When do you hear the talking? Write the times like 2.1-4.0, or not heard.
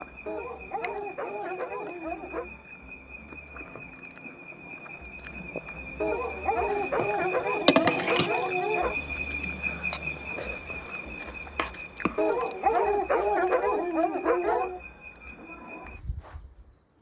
not heard.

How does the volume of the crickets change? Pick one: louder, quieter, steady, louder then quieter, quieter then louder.
louder then quieter.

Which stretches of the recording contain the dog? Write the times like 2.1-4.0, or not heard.
0.2-2.5, 6.0-8.9, 12.2-14.8.